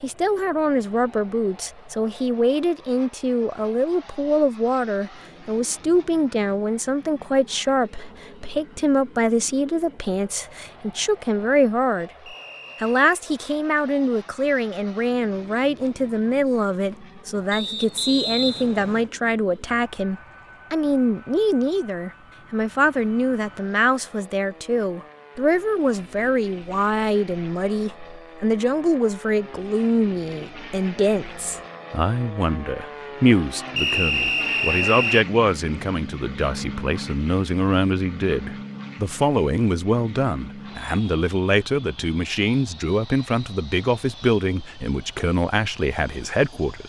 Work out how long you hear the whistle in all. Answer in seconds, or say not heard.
4 s.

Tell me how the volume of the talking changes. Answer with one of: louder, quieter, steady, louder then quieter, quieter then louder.
steady.